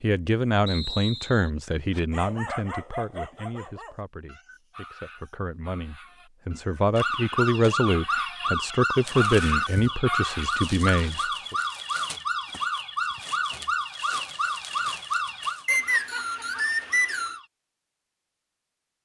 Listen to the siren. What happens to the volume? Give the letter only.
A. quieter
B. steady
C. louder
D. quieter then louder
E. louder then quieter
A.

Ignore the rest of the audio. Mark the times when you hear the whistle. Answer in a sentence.
You can hear the whistle from 0.7 to 1.5 s and from 15.7 to 17.4 s.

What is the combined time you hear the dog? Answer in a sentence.
The dog can be heard for 9 seconds in total.